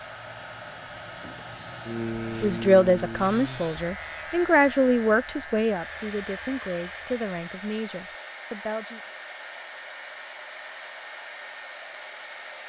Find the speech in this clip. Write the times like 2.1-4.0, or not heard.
2.4-9.0.